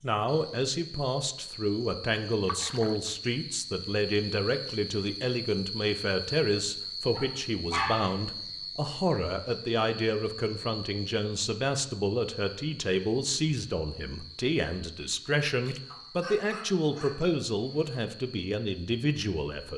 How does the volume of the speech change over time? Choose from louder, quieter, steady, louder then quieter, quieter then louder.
steady.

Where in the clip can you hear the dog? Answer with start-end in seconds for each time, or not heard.
7.1-8.2, 15.9-17.9.